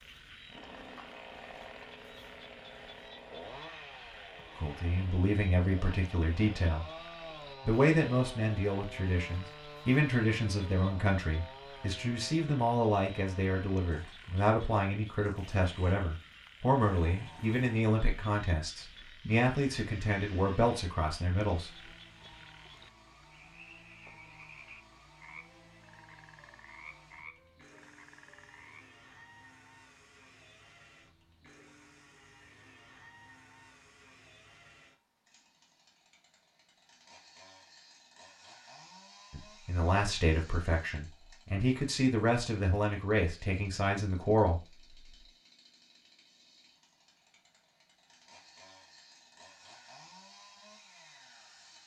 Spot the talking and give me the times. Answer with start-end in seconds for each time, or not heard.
4.5-6.8, 7.7-21.8, 39.3-44.9.